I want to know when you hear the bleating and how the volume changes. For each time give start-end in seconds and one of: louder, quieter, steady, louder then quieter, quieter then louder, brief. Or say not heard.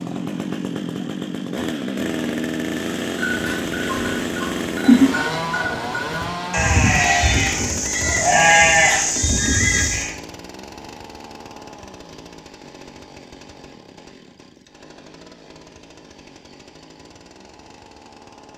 3.2-10.1 louder.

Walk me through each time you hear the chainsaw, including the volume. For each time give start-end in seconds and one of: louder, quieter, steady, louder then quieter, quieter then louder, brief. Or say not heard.
0.0-18.5 quieter.